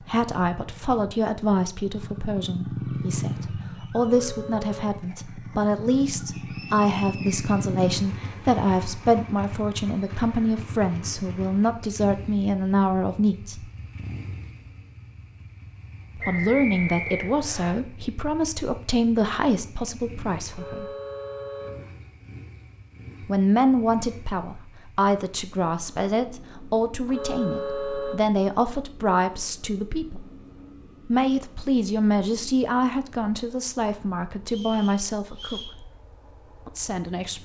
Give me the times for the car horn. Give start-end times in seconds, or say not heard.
4.0-5.0, 20.5-21.9, 27.1-28.2.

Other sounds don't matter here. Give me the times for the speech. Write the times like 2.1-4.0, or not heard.
0.1-13.7, 16.1-20.9, 23.2-30.2, 31.1-35.9, 36.6-37.4.